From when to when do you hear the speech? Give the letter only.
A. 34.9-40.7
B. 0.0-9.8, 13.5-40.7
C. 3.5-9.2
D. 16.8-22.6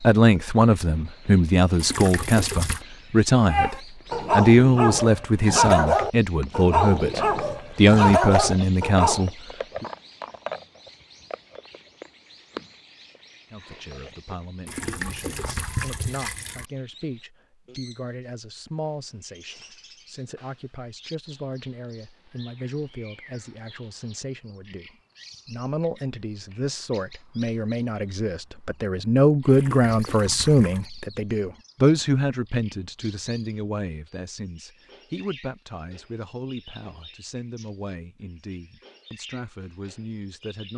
B.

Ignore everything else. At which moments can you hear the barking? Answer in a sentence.
You can hear the barking from 3.5 to 9.2 s.